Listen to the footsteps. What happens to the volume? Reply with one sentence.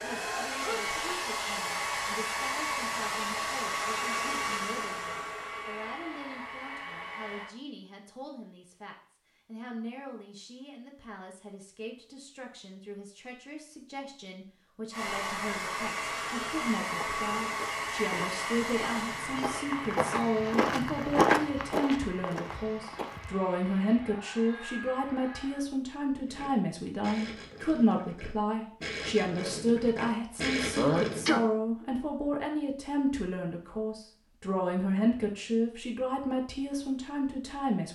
The loudness of the footsteps goes up, then down.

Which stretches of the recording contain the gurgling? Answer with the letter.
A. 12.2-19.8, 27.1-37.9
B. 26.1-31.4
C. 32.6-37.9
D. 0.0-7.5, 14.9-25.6
B.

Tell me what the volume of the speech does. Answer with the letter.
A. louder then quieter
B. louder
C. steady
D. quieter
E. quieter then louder
B.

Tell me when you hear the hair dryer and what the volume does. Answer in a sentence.
The hair dryer can be heard from 0.0 to 7.5 s, getting quieter; and from 14.9 to 25.6 s, getting quieter.